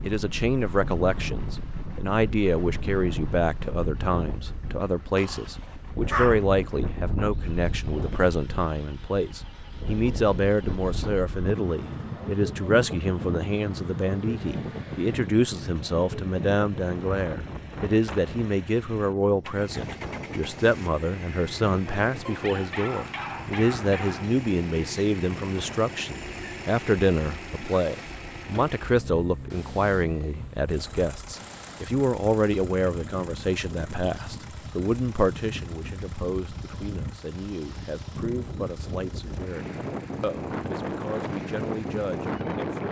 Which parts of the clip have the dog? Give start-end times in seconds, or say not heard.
5.2-6.4, 22.2-24.2.